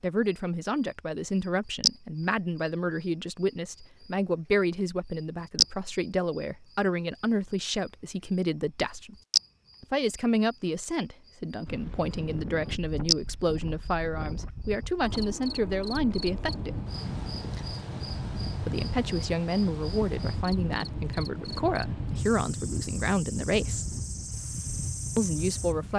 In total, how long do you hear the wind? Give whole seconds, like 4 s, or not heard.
14 s.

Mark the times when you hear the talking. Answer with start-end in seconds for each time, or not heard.
0.0-9.2, 9.8-16.8, 18.6-23.9, 25.1-25.9.